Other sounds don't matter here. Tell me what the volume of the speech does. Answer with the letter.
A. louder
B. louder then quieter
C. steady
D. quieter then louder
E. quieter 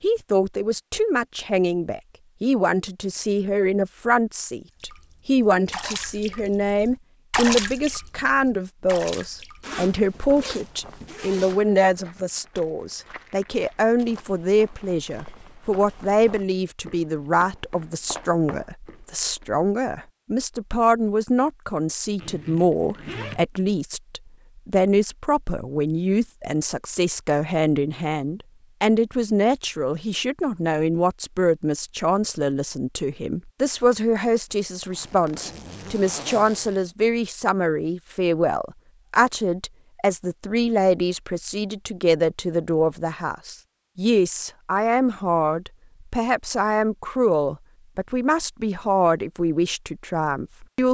C.